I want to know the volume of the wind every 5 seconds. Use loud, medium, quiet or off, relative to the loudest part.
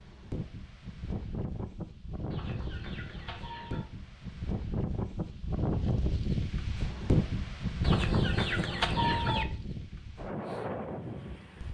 medium, loud, medium.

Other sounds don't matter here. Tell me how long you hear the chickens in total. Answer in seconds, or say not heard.
3 s.